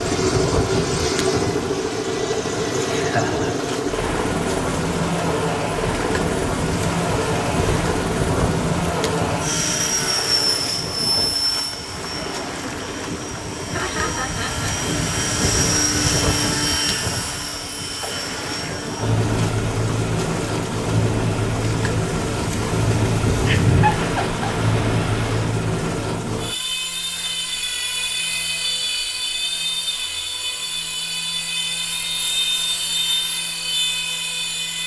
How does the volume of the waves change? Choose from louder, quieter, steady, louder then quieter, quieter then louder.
steady.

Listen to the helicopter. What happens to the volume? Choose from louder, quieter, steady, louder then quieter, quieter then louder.
steady.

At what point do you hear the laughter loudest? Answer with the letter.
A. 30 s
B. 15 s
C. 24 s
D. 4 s
C.